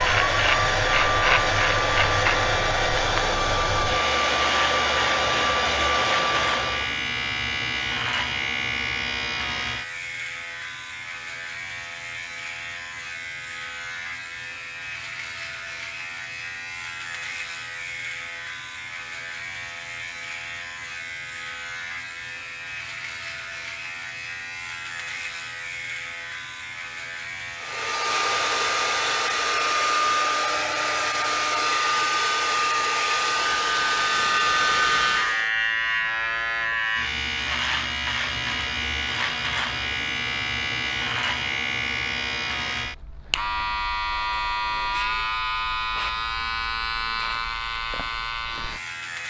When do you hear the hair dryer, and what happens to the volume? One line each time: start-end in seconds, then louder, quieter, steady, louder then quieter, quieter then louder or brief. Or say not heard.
0.0-7.0 steady
27.6-35.5 steady.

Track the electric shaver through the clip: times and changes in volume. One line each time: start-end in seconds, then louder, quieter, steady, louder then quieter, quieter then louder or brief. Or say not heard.
0.0-49.2 quieter then louder.